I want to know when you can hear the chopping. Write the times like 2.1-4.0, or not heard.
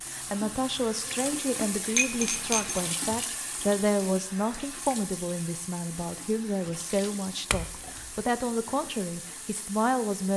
not heard.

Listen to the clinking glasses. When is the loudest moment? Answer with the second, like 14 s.
2 s.